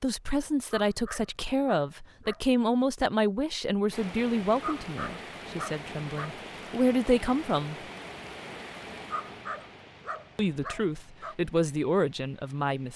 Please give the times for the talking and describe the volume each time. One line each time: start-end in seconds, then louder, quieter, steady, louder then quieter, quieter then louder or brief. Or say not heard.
0.0-7.8 quieter then louder
10.3-12.9 brief.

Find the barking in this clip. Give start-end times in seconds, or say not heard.
0.8-2.4, 4.6-6.5, 9.1-11.3.